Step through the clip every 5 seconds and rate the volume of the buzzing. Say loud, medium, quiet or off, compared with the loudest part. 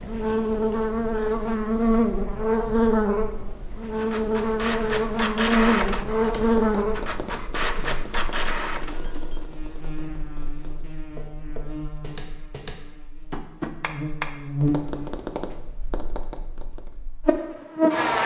loud, loud, medium, loud.